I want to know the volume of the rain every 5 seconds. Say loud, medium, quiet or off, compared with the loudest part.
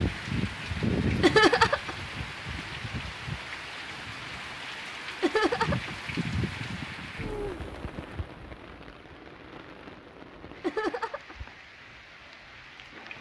loud, loud, quiet.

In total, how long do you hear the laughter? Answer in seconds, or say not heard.
2 s.